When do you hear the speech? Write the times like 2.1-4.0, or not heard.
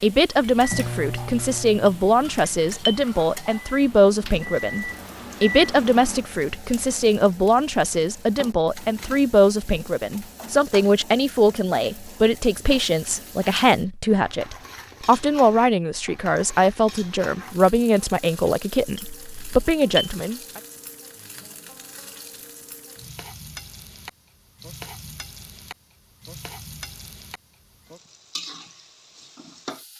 0.0-20.6.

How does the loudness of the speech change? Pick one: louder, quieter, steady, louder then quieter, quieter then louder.
steady.